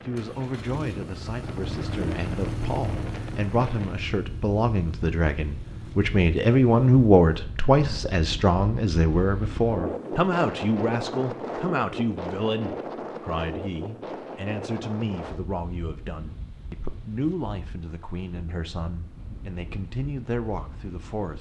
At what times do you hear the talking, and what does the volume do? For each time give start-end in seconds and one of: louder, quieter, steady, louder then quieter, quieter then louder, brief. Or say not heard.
0.0-21.3 louder then quieter.